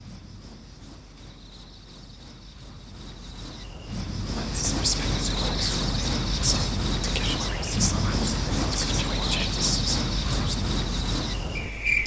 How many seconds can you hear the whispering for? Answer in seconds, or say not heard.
6 s.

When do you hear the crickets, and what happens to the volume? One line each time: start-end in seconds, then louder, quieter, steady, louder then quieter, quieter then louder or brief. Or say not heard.
0.0-12.0 louder.